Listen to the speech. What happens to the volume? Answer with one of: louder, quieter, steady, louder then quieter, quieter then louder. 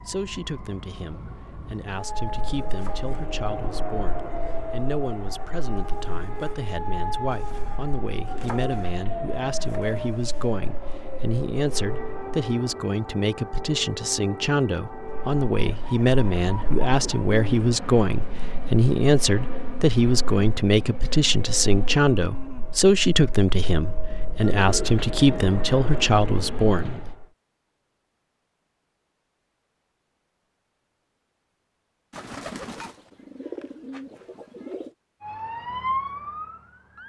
louder.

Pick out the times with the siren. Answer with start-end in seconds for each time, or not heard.
0.0-17.2, 35.2-37.0.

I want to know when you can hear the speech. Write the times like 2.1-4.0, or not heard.
0.1-27.0.